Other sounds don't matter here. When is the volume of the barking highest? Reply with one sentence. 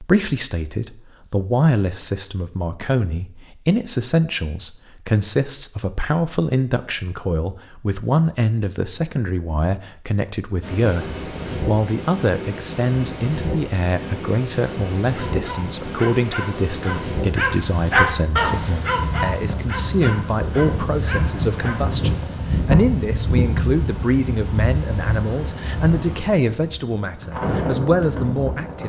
The loudest moment of the barking is at 18 seconds.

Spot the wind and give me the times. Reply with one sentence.
You can hear the wind from 10.6 to 28.8 s.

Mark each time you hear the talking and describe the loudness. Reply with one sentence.
The talking can be heard from 0.0 to 28.8 s, at a steady volume.